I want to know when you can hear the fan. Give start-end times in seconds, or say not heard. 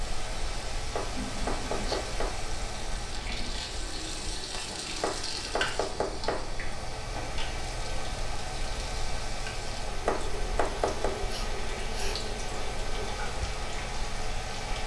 0.0-14.8.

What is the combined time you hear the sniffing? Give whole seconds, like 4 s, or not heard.
2 s.